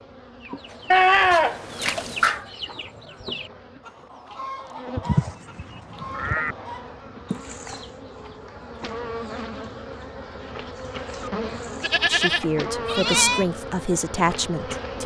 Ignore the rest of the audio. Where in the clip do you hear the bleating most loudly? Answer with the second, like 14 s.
1 s.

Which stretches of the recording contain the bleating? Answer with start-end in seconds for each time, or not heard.
0.9-2.4, 5.0-6.5, 11.8-13.4.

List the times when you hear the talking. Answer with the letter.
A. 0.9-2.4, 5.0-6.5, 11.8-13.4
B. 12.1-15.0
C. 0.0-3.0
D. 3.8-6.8
B.